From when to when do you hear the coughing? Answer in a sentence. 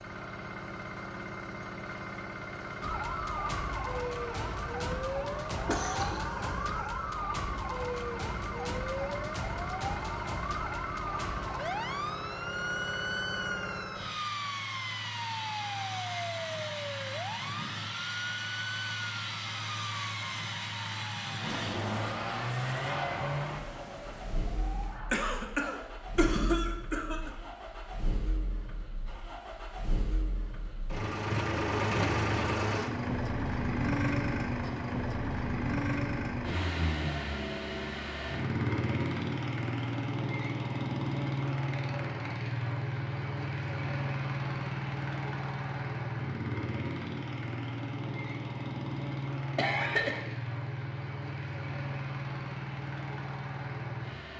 The coughing can be heard from 5.7 to 6.2 s, from 25.1 to 27.3 s and from 49.5 to 50.3 s.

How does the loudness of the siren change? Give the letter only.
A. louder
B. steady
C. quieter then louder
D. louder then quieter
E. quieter
E.